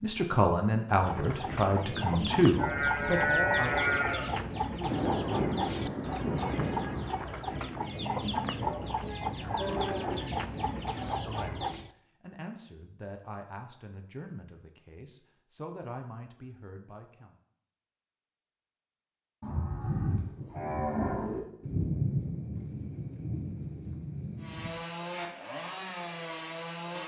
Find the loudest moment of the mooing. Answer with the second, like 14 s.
3 s.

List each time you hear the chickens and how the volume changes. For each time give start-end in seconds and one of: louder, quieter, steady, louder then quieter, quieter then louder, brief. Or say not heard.
0.9-11.9 steady.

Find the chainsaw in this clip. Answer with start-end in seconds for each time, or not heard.
24.4-27.0.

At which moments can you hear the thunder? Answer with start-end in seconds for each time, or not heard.
4.8-7.1, 21.6-24.7.